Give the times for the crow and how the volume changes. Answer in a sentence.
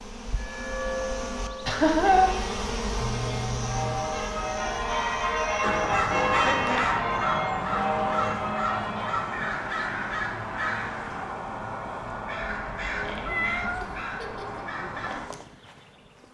The crow can be heard from 5.6 to 15.2 s, getting quieter.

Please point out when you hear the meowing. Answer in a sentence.
The meowing can be heard from 3.0 to 4.1 s and from 12.7 to 14.0 s.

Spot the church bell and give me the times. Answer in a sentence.
You can hear the church bell from 0.3 to 9.3 s.